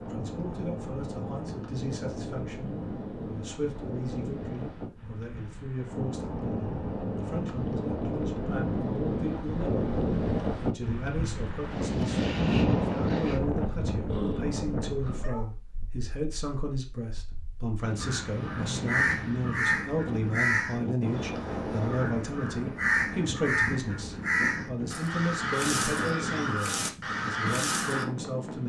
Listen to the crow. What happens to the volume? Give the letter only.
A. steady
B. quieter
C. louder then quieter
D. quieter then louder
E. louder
A.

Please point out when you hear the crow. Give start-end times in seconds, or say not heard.
17.9-28.1.